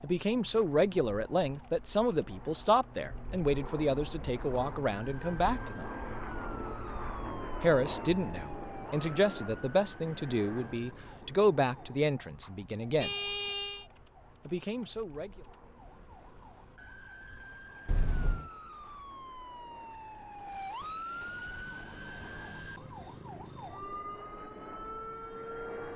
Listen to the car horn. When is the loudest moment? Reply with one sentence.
The volume of the car horn peaks at 13 seconds.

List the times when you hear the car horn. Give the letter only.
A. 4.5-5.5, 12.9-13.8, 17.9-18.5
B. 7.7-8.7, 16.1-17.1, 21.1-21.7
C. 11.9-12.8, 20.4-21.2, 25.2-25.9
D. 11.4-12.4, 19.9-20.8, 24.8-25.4
A.